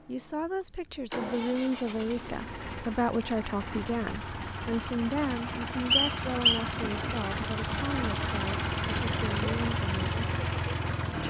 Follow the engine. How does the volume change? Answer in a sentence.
The loudness of the engine goes up.